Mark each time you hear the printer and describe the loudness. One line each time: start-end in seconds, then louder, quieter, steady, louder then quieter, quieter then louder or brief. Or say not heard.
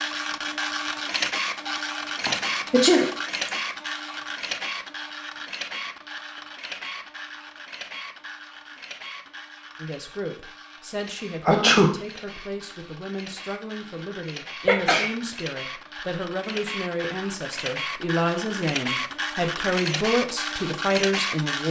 0.0-21.6 quieter then louder.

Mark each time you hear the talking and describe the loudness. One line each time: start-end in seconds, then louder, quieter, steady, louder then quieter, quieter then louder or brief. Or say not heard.
9.8-21.6 louder.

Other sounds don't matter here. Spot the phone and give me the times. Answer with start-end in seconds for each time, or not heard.
not heard.